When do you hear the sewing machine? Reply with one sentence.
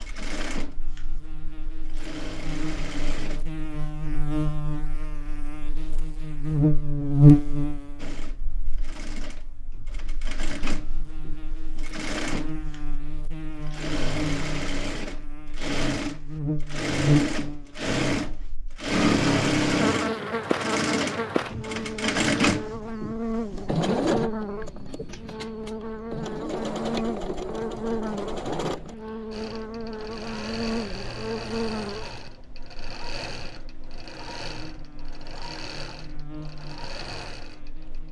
You can hear the sewing machine from 0.0 to 3.5 s and from 8.0 to 38.0 s.